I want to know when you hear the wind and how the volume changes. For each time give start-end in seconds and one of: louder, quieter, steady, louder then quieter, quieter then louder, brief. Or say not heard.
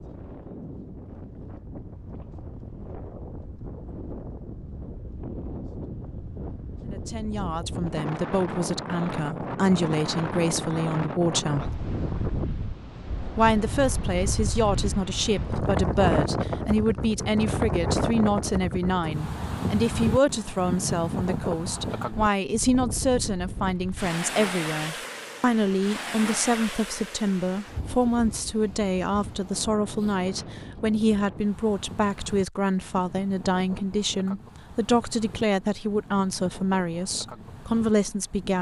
0.0-38.5 louder then quieter.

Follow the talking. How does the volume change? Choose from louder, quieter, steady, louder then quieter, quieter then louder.
steady.